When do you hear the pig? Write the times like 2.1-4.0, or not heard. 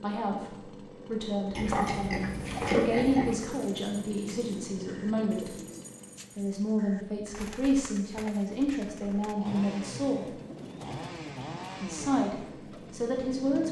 1.6-3.4.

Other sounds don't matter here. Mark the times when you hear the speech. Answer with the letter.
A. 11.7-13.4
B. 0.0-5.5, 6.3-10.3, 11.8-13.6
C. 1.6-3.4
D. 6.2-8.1
B.